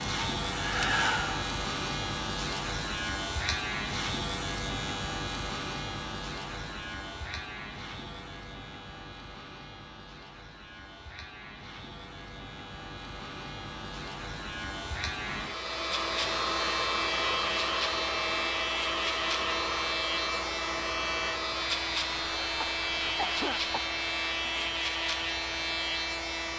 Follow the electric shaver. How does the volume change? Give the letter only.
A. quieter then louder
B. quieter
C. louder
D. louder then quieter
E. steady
A.